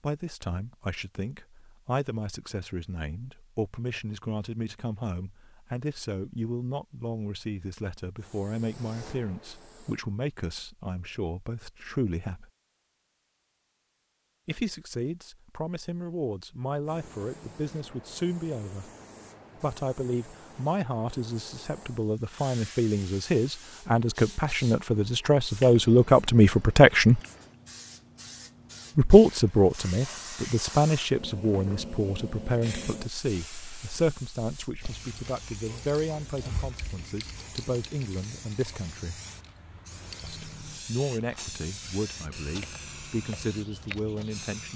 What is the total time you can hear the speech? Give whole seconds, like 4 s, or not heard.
39 s.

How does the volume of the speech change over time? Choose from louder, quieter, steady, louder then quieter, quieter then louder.
louder then quieter.